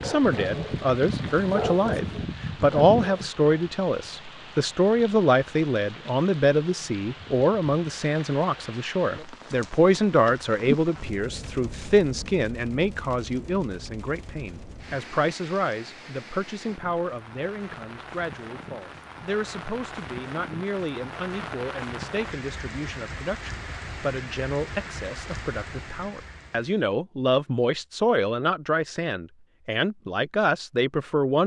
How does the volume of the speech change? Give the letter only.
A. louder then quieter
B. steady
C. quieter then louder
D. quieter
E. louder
C.